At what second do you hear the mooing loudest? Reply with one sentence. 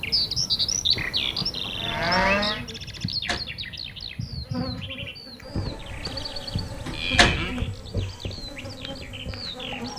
The volume of the mooing peaks at 2 seconds.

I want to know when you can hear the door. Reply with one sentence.
You can hear the door from 3.0 to 3.5 s and from 6.6 to 7.5 s.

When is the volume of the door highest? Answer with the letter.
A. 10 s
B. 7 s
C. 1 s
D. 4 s
B.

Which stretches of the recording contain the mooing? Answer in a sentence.
You can hear the mooing from 0.9 to 2.6 s and from 6.0 to 7.5 s.